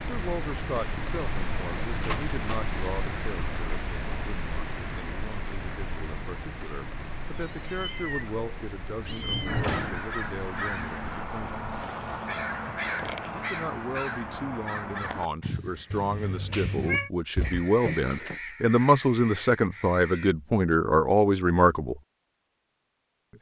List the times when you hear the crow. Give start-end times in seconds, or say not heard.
9.4-20.4.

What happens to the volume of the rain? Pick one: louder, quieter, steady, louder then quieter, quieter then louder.
quieter.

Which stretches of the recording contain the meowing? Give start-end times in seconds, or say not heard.
7.2-9.7, 15.9-17.1.